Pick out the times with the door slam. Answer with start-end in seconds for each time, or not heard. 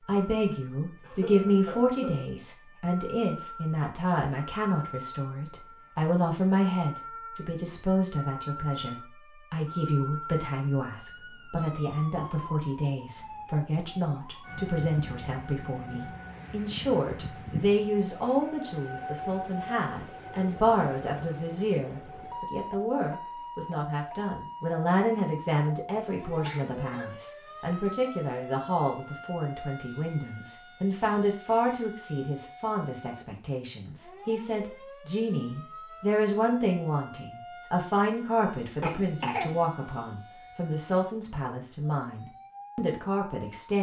not heard.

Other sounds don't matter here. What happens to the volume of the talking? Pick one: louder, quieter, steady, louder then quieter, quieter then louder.
steady.